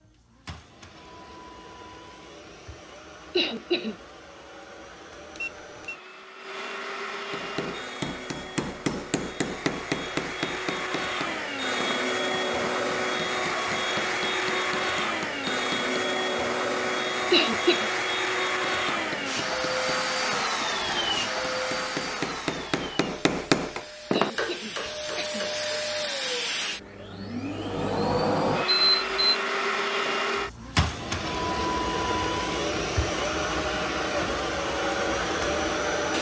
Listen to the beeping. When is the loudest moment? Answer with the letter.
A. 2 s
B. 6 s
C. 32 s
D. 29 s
D.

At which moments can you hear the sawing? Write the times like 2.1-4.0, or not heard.
not heard.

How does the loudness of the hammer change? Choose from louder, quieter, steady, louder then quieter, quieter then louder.
quieter then louder.